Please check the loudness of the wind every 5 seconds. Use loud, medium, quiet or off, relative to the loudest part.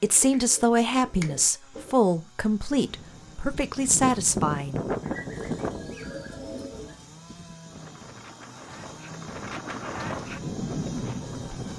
loud, medium, loud.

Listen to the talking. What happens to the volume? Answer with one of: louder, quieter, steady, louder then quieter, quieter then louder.
quieter then louder.